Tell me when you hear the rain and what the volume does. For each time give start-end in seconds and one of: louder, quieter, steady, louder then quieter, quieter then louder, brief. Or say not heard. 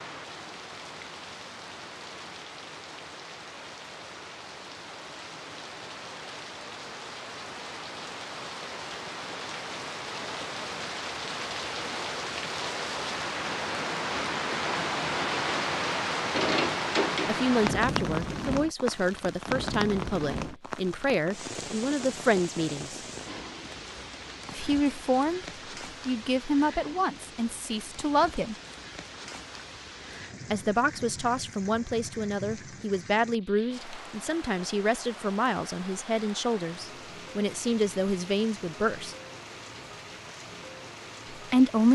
0.0-41.8 louder then quieter.